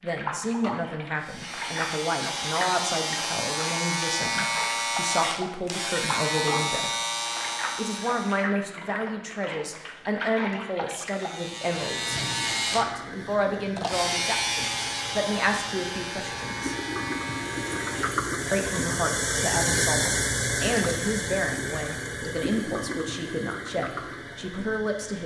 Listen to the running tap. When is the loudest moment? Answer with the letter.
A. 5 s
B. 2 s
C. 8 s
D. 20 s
D.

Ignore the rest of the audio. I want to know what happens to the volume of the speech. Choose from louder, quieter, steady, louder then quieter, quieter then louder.
steady.